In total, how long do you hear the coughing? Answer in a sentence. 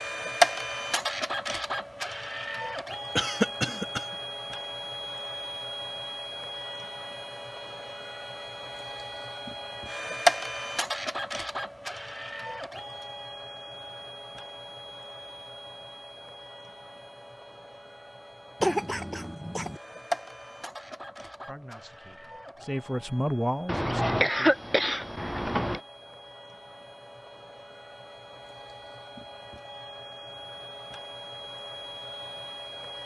The coughing can be heard for 4 seconds in total.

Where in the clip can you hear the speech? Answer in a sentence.
You can hear the speech from 21.4 to 24.6 s.